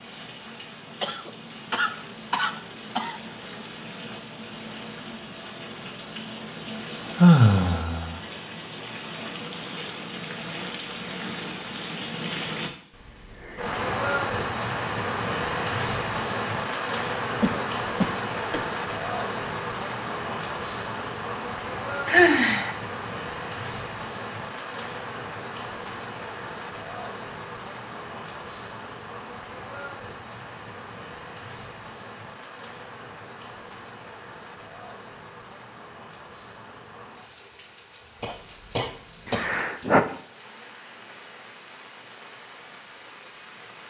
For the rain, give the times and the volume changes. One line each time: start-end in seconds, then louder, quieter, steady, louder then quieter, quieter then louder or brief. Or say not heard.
0.0-43.8 louder then quieter.